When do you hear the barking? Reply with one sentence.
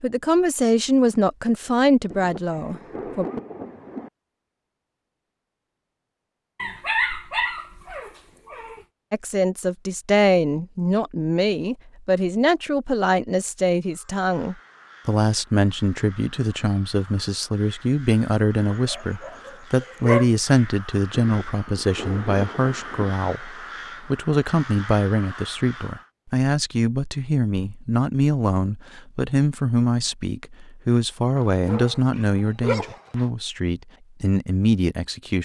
You can hear the barking from 6.5 to 8.8 s, from 18.7 to 20.3 s and from 31.4 to 33.3 s.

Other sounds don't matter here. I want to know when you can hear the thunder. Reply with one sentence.
You can hear the thunder from 2.1 to 4.1 s and from 21.2 to 23.1 s.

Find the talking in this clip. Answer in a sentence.
The talking can be heard from 0.0 to 3.2 s and from 9.1 to 35.4 s.